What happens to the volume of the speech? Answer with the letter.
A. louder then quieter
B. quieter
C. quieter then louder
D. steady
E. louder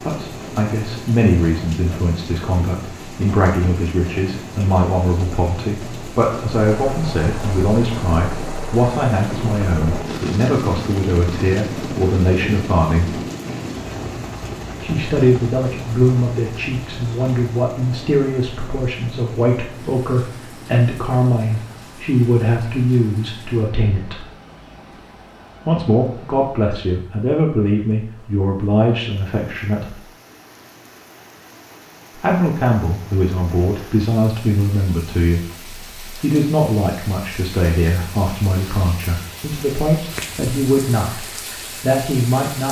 D.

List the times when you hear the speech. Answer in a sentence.
You can hear the speech from 0.0 to 13.2 s, from 14.8 to 24.2 s, from 25.6 to 30.0 s and from 32.1 to 42.6 s.